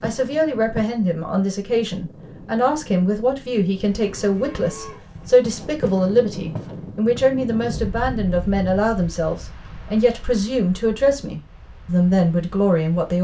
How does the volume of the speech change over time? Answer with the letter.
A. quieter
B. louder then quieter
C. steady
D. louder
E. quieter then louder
C.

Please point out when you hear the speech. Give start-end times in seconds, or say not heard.
0.0-13.1.